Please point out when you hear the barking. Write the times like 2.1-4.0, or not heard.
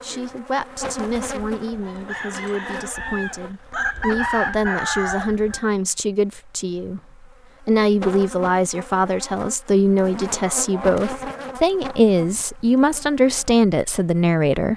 not heard.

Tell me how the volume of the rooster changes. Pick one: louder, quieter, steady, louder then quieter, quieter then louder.
louder.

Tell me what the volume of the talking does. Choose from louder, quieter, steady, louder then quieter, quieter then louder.
louder.